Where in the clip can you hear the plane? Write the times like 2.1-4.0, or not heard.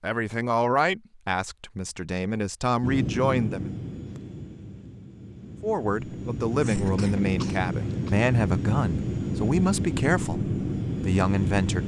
2.8-11.8.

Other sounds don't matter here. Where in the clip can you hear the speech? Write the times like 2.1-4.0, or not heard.
0.0-3.7, 5.6-11.8.